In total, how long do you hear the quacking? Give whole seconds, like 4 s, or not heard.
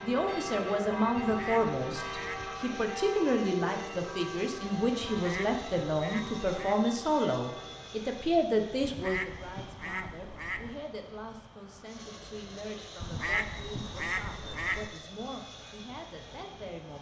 7 s.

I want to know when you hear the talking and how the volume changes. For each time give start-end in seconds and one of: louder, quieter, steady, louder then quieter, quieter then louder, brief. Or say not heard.
0.0-16.9 quieter.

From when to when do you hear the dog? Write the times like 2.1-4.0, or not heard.
not heard.